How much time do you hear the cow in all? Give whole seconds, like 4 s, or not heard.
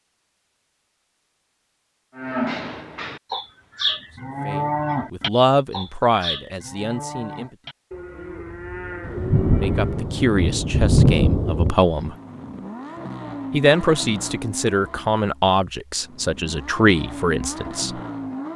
8 s.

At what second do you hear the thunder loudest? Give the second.
11 s.